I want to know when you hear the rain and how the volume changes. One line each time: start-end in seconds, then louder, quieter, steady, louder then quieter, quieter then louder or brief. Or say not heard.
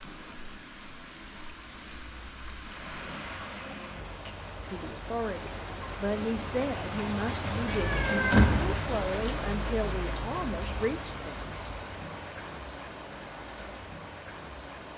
0.0-14.9 louder then quieter.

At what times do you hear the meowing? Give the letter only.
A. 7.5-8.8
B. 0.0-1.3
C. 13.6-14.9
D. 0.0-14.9
A.